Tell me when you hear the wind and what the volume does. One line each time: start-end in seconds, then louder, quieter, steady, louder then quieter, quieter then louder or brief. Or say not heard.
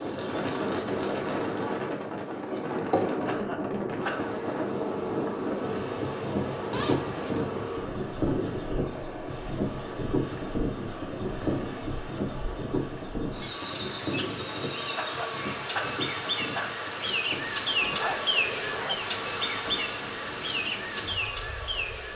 0.0-22.1 quieter.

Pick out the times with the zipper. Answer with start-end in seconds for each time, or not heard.
6.7-7.5, 17.9-19.0.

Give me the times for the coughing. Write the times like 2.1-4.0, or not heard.
3.2-4.4, 14.9-16.9.